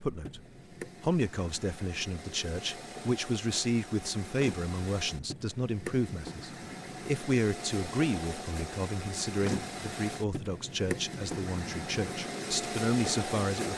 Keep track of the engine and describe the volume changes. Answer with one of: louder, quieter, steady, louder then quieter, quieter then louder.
louder.